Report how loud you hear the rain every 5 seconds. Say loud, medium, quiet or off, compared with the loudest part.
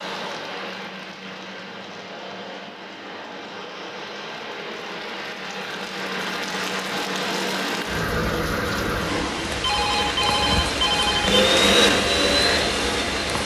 medium, loud, loud.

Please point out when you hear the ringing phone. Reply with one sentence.
The ringing phone can be heard from 9.6 to 11.4 s.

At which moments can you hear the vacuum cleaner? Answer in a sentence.
The vacuum cleaner can be heard from 9.8 to 13.3 s.